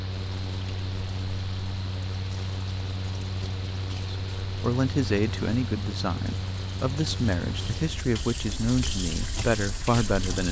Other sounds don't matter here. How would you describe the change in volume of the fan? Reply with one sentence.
The volume of the fan stays about the same.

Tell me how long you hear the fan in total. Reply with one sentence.
The fan can be heard for 8 seconds in total.